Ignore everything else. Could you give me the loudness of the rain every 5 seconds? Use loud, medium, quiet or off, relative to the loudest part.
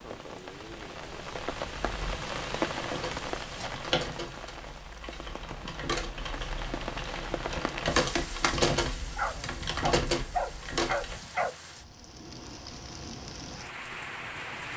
loud, loud, medium.